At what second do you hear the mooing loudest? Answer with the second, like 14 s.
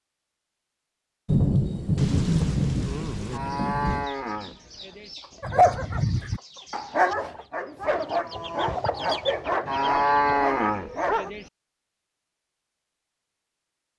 10 s.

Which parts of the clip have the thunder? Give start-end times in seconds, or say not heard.
1.2-4.0.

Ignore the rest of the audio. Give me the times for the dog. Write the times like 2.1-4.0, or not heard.
5.4-11.3.